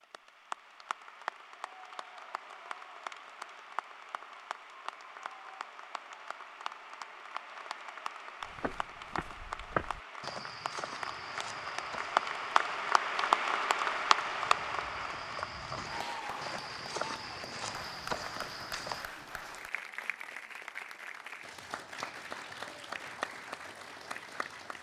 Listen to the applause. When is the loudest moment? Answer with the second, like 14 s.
14 s.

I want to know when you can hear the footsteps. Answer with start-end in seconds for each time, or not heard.
8.4-19.1.